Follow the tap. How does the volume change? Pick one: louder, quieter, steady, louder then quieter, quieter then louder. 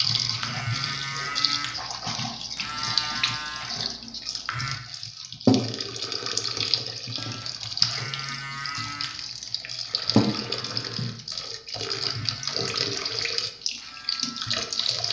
steady.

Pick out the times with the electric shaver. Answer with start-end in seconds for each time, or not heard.
0.0-4.8, 7.2-15.0.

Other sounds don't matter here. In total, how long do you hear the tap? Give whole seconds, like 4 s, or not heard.
15 s.